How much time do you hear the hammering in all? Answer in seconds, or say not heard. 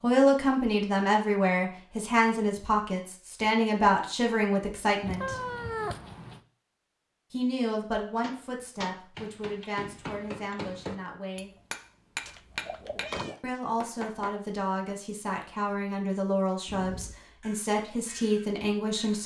6 s.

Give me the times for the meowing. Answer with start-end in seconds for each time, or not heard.
5.0-6.4, 12.2-13.4.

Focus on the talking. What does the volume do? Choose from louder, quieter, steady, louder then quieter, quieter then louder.
quieter then louder.